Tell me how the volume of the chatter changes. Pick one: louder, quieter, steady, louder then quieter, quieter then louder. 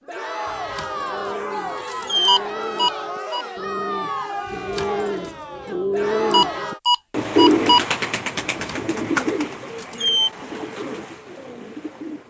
steady.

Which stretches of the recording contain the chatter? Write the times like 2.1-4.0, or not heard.
0.1-6.8.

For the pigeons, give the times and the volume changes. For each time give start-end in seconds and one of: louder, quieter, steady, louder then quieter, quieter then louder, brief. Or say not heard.
0.8-12.2 louder then quieter.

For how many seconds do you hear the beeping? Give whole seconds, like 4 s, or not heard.
3 s.